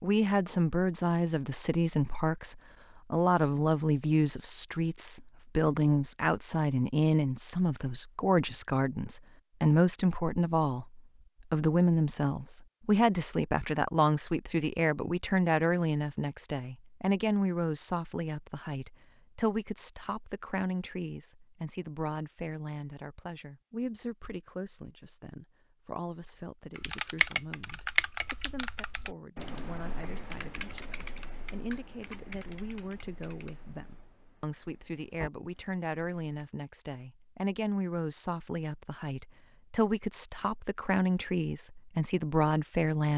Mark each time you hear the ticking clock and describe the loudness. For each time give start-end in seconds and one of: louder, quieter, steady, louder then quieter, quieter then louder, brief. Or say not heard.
not heard.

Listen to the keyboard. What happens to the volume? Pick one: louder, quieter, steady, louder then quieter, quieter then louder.
quieter.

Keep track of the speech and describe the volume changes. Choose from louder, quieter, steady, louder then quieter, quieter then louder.
quieter then louder.